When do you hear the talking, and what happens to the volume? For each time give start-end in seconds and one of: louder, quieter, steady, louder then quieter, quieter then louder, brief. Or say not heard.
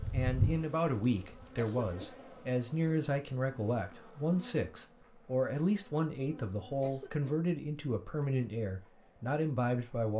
0.1-10.1 steady.